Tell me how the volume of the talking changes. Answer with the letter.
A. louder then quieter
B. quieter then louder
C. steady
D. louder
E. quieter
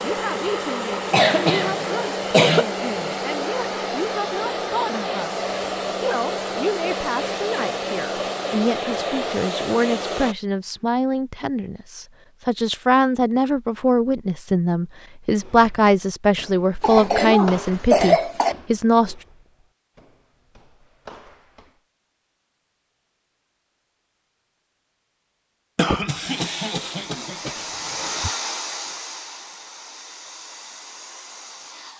D.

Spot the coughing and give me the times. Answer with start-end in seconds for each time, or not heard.
0.9-2.6, 16.8-18.6, 25.8-28.3.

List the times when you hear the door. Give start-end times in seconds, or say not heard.
not heard.